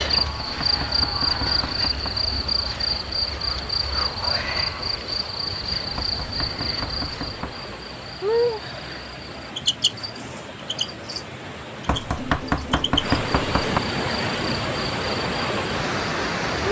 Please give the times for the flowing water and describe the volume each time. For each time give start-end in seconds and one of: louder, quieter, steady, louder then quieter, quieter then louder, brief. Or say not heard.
0.0-16.6 louder.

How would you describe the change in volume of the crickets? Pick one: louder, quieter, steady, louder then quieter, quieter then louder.
quieter.